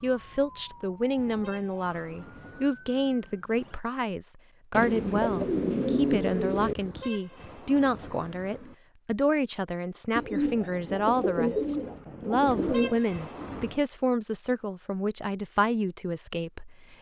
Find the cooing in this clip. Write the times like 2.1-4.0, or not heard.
4.7-6.8, 10.2-13.0.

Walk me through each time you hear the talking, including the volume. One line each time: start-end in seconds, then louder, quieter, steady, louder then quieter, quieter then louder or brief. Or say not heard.
0.0-16.9 steady.